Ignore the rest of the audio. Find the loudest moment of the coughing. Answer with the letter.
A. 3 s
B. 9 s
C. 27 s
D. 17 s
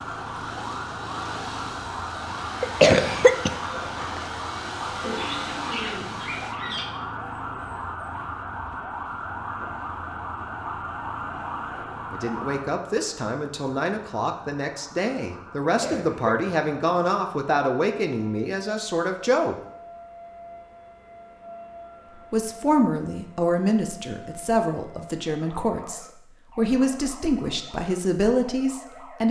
A.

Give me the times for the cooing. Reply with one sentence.
You can hear the cooing from 5.0 to 7.0 s.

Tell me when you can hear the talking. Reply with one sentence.
The talking can be heard from 12.1 to 19.6 s and from 22.2 to 29.2 s.